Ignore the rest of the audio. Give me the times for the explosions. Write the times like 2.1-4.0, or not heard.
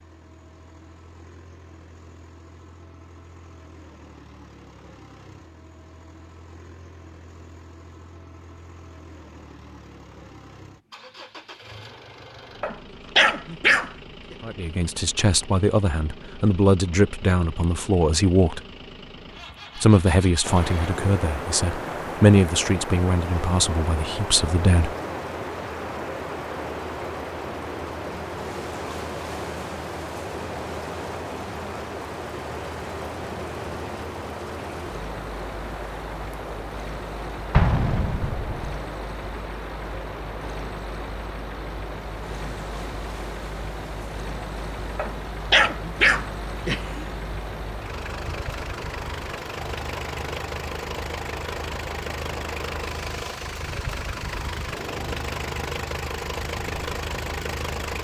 37.5-38.8.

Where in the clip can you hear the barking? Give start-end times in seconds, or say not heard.
12.6-14.3, 45.0-47.0.